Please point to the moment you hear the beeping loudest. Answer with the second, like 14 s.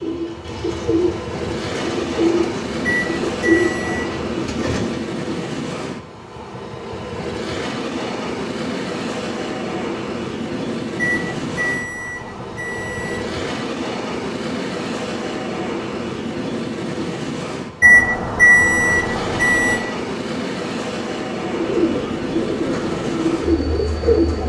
18 s.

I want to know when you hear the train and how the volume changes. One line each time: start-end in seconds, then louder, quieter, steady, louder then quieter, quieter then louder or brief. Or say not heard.
0.0-24.4 steady.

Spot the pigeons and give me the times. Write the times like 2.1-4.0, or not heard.
0.0-5.1, 21.5-24.4.